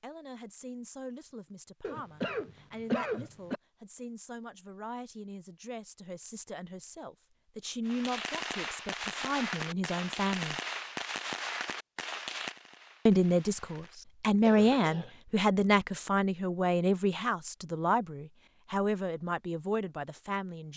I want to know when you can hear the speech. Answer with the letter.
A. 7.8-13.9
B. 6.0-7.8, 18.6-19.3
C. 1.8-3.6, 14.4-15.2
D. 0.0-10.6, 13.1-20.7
D.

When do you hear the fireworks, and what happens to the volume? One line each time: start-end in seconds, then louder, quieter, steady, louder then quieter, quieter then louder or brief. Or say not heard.
7.8-13.9 quieter.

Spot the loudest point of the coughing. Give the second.
3 s.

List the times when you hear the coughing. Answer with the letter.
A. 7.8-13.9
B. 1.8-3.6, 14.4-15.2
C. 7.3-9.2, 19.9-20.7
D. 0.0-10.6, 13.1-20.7
B.